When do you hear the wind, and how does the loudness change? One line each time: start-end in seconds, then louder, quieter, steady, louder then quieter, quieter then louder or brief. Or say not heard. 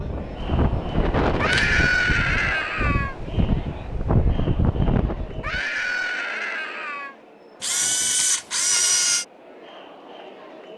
0.0-5.6 quieter then louder.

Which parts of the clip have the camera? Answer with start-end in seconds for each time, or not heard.
0.5-2.1, 7.6-9.2.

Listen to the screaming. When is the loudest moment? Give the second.
2 s.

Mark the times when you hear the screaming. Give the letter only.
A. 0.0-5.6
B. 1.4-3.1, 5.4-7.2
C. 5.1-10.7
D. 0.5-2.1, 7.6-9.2
B.